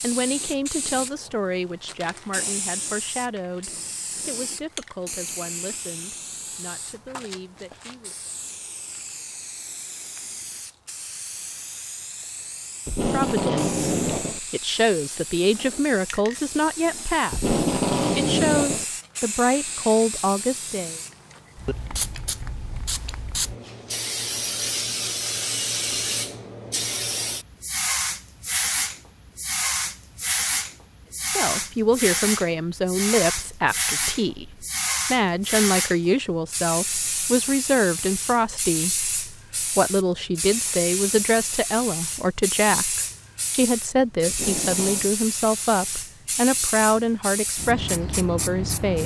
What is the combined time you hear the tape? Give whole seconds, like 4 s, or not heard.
4 s.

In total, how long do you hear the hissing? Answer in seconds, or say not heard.
49 s.